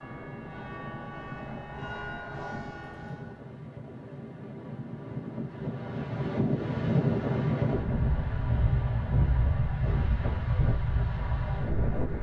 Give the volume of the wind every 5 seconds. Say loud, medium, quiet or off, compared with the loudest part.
quiet, loud, loud.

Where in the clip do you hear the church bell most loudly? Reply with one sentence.
The loudest moment of the church bell is at 2 seconds.